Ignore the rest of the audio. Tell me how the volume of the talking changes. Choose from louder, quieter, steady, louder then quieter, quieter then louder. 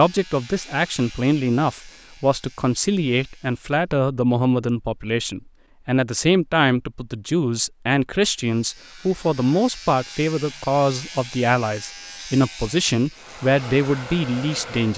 steady.